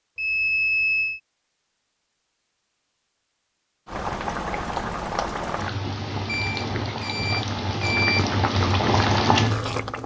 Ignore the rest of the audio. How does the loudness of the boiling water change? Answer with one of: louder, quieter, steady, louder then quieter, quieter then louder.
louder.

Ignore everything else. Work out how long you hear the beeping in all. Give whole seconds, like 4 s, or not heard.
3 s.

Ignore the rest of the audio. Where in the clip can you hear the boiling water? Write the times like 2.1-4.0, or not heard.
3.9-10.0.